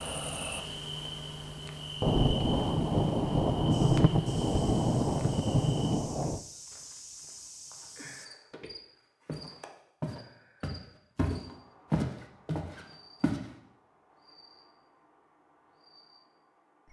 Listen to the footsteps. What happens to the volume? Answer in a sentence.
The loudness of the footsteps goes up.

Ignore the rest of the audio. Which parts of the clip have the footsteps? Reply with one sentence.
The footsteps can be heard from 3.7 to 13.4 s.